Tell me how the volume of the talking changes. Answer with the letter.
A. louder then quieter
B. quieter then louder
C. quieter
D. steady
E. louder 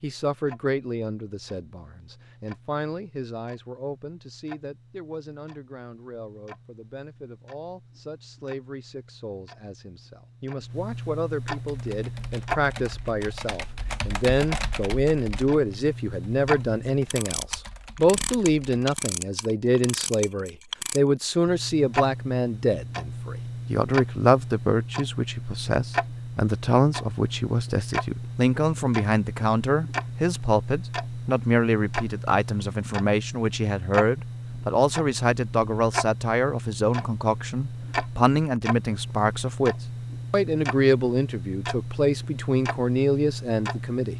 E.